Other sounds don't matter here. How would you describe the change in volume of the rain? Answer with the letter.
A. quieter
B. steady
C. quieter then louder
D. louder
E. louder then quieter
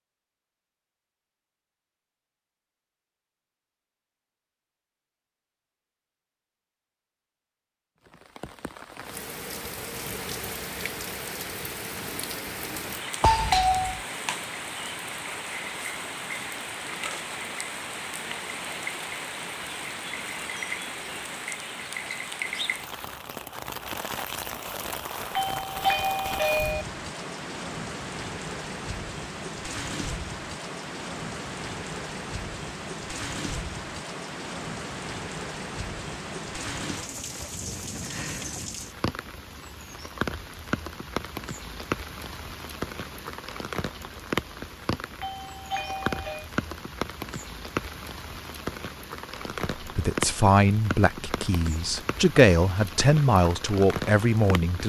B.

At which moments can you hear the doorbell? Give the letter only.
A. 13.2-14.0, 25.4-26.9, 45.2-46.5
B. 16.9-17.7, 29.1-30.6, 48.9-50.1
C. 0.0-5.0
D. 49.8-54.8
A.